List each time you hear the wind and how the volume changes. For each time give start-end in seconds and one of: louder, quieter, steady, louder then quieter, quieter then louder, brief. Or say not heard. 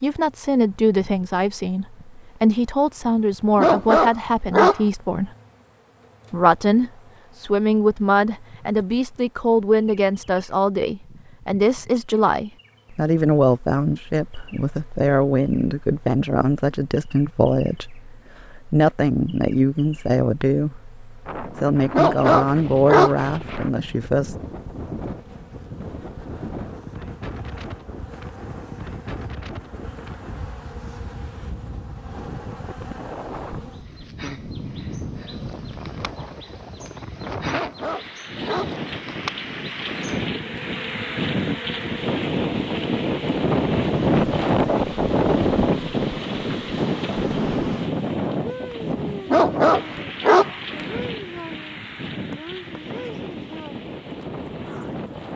21.2-55.3 louder then quieter.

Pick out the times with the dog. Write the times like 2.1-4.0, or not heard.
3.5-4.8, 21.9-23.1, 37.5-38.8, 49.2-50.5.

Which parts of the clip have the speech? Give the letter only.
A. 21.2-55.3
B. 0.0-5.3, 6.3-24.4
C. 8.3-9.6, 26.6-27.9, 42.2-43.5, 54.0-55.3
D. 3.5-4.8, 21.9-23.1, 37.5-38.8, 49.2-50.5
B.